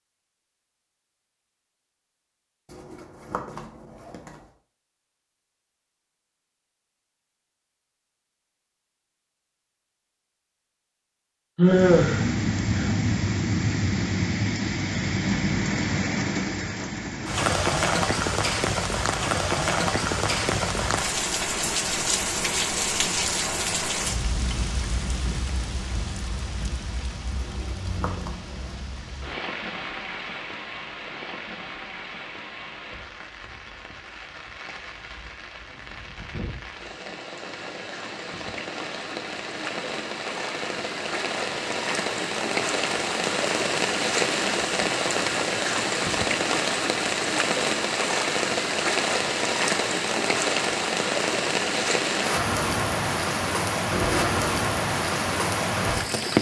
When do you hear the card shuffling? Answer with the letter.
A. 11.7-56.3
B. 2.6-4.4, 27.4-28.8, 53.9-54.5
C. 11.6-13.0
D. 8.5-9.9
B.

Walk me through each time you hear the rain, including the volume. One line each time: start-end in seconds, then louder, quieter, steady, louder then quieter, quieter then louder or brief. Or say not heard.
11.7-56.3 quieter then louder.